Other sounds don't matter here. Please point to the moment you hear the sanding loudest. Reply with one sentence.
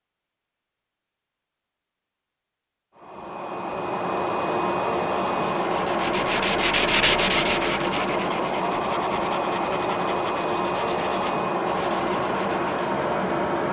The loudest moment of the sanding is at 7 seconds.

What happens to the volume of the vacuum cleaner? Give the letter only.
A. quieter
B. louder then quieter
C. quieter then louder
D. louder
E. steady
E.